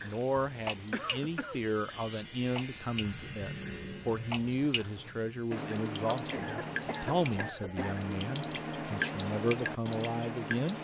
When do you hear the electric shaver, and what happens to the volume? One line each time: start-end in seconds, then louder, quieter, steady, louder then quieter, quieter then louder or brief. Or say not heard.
0.0-10.7 quieter.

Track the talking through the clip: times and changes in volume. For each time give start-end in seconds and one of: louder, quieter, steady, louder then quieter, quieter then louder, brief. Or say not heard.
0.0-10.7 steady.